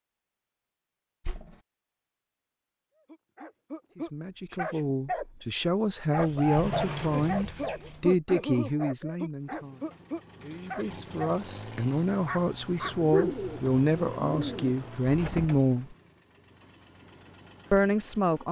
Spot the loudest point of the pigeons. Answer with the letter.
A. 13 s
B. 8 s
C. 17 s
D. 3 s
A.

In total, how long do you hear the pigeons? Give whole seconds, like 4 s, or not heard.
2 s.